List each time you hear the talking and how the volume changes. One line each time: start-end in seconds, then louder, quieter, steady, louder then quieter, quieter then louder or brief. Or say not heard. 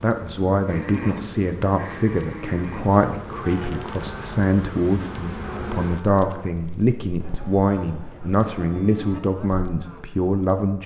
0.0-10.8 steady.